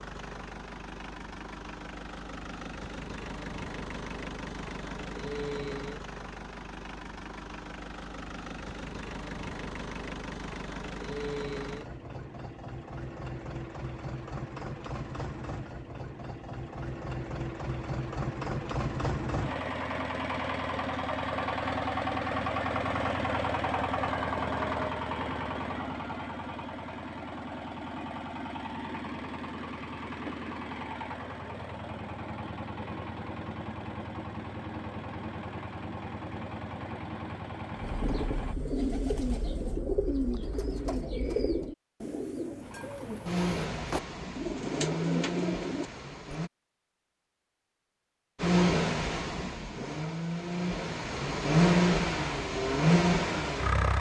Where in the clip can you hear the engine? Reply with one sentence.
The engine can be heard from 0.0 to 38.5 s, from 42.6 to 46.5 s and from 48.4 to 53.9 s.